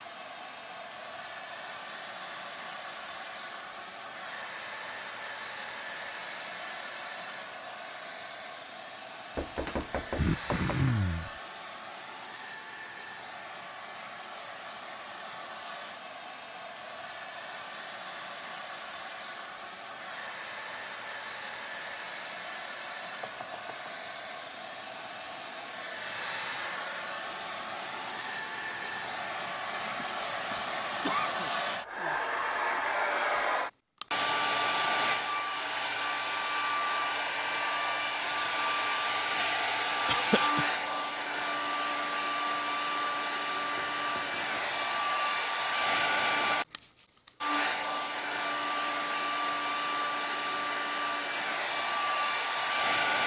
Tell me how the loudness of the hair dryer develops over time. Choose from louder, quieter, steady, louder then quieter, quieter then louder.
louder.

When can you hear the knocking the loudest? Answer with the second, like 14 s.
10 s.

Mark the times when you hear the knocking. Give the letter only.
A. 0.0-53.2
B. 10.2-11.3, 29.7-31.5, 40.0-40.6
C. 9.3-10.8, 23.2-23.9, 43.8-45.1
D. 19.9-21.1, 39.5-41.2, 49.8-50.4
C.